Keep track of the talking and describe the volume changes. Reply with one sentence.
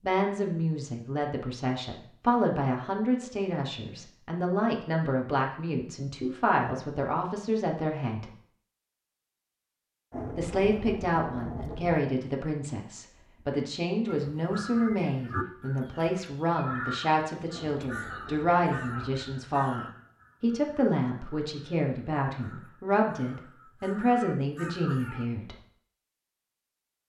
The volume of the talking stays about the same.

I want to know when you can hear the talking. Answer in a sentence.
You can hear the talking from 0.0 to 8.3 s and from 10.3 to 25.6 s.